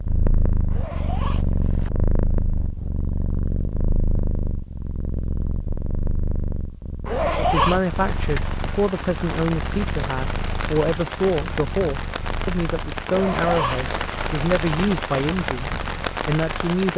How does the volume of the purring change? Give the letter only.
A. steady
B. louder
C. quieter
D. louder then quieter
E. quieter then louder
C.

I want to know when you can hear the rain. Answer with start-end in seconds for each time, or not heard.
7.7-16.9.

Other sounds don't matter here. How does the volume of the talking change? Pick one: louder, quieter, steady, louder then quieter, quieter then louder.
steady.